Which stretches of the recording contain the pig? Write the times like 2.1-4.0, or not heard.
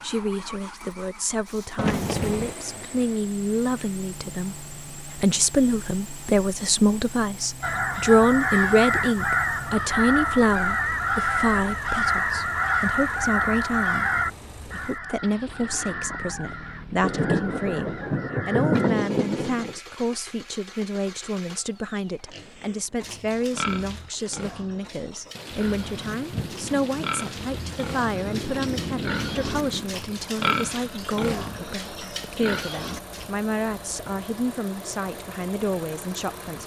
22.3-33.3.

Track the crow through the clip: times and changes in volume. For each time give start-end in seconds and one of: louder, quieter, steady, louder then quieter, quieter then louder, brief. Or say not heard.
7.6-18.9 quieter.